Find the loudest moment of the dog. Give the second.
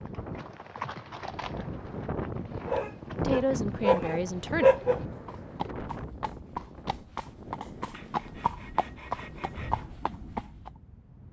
5 s.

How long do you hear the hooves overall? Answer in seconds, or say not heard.
11 s.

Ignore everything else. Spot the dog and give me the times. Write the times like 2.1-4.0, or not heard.
2.6-5.0.